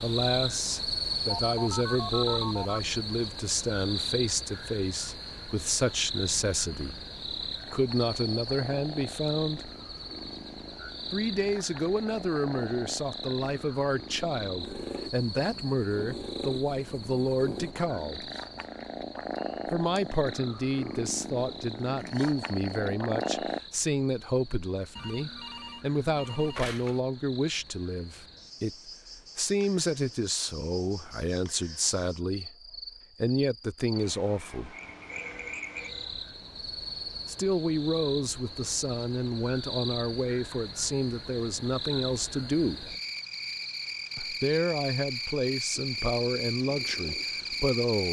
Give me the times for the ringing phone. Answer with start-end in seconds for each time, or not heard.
1.4-2.8, 24.9-27.0, 34.8-36.2.